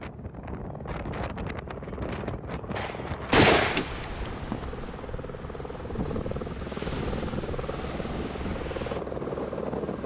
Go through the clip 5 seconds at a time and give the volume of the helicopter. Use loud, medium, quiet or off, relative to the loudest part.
medium, loud.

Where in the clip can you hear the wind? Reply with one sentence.
You can hear the wind from 0.0 to 10.0 s.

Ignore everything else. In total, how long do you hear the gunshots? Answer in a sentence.
You can hear the gunshots for 2 seconds altogether.